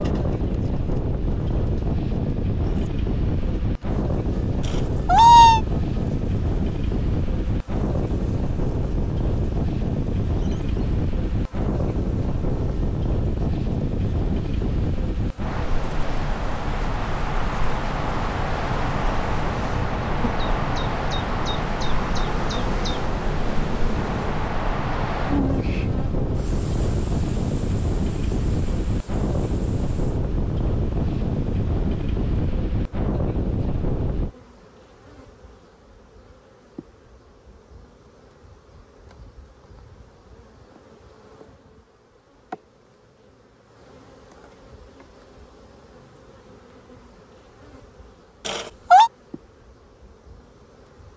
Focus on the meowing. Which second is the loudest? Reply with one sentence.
The volume of the meowing peaks at 5 seconds.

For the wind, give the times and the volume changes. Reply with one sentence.
You can hear the wind from 0.0 to 34.3 s, at a steady volume.